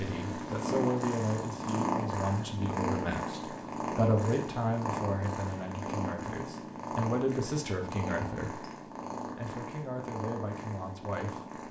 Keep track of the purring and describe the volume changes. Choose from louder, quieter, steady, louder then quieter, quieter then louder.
quieter.